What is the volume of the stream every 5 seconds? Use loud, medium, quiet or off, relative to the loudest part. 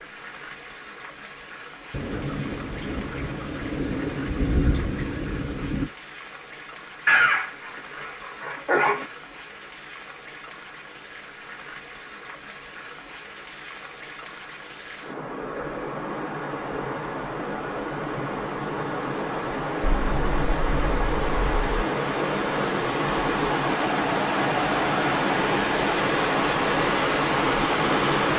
quiet, quiet, quiet, medium, loud, loud.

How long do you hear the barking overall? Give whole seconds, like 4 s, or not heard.
2 s.